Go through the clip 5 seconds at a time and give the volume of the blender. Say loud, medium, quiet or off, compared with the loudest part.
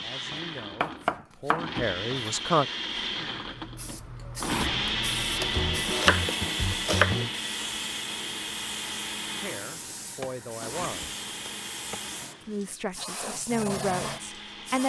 loud, loud, medium.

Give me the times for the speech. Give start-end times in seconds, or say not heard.
0.0-2.6, 9.4-11.2, 12.4-14.8.